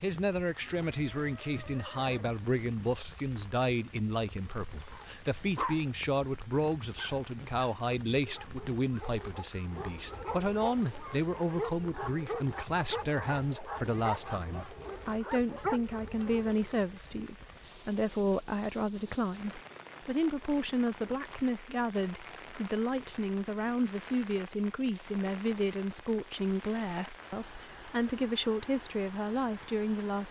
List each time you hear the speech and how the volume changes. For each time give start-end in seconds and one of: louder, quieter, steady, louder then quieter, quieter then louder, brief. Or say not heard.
0.0-30.2 steady.